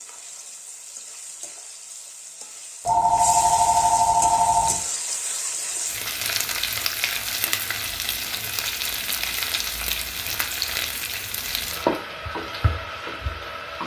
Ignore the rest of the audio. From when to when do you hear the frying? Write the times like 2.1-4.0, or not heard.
0.0-13.8.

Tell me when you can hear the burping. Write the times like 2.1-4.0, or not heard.
not heard.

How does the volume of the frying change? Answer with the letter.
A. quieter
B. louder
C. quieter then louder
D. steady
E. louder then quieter
B.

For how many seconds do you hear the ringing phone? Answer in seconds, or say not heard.
2 s.